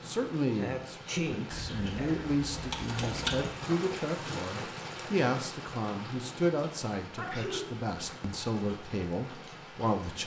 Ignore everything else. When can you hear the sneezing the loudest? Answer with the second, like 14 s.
1 s.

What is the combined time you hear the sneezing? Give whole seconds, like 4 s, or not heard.
2 s.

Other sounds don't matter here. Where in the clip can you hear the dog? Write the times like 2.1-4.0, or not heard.
not heard.